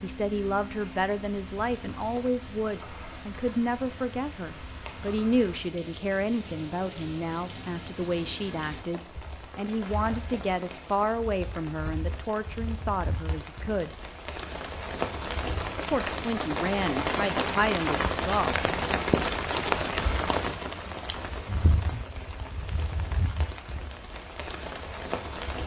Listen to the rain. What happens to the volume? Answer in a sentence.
The volume of the rain goes up, then down.